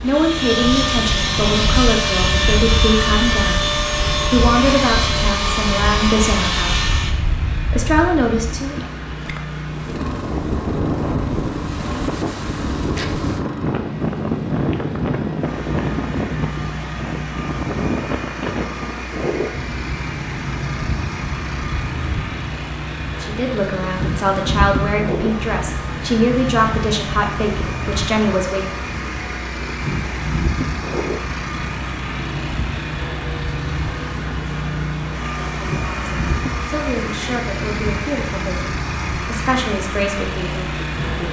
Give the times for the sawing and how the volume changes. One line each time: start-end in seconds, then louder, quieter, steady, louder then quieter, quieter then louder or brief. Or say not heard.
0.0-7.1 steady.